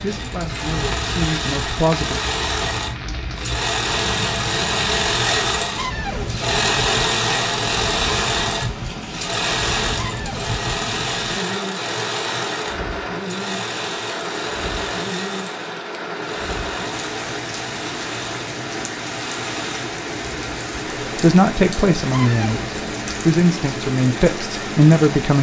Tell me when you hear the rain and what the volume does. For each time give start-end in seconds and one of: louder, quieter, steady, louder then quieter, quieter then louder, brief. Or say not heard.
0.0-25.3 steady.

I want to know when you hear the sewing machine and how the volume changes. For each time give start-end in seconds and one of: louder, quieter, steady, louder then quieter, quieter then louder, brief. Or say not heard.
0.0-25.1 quieter.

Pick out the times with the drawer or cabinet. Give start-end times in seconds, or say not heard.
5.8-6.3, 9.9-10.4, 22.1-22.6.